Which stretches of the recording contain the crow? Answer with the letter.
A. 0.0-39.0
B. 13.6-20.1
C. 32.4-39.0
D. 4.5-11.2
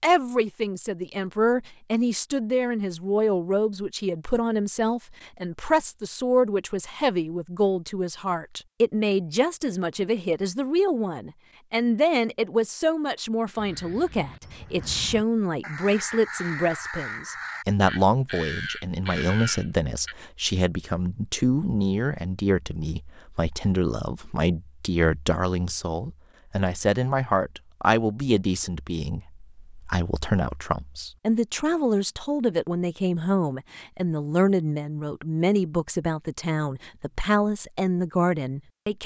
B.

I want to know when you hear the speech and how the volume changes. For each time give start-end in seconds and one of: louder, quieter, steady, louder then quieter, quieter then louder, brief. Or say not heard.
0.0-39.0 steady.